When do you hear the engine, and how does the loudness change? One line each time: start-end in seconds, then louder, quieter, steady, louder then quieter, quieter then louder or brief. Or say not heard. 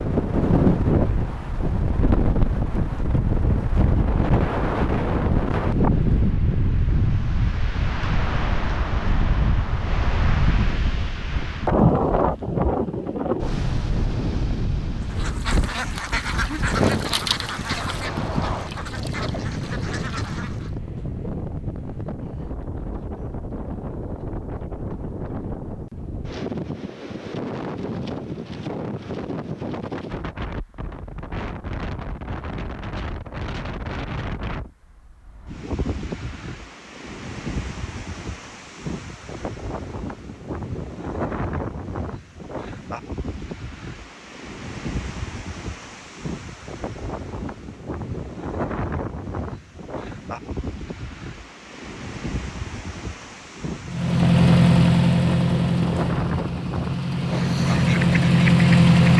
53.9-59.1 quieter then louder.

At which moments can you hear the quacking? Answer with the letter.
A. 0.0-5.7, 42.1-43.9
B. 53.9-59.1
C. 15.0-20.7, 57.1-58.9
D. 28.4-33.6
C.